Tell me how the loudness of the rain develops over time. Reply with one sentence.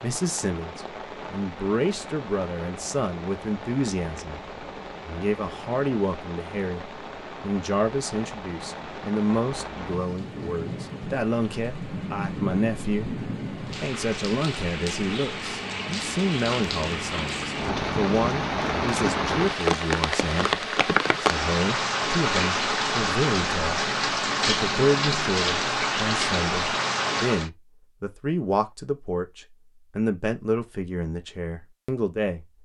The loudness of the rain goes up.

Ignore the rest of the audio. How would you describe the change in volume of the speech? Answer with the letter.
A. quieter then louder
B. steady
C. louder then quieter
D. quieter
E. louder
B.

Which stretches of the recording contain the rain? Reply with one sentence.
You can hear the rain from 0.0 to 27.5 s.